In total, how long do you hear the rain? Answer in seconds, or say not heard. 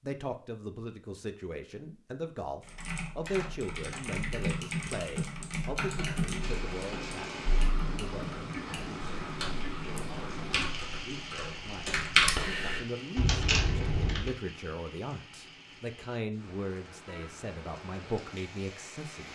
13 s.